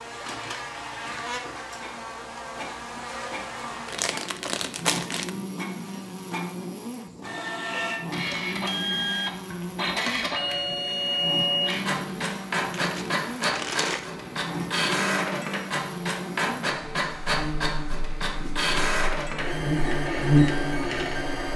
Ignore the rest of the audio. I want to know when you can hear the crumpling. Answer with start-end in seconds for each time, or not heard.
3.9-5.3, 12.7-14.1.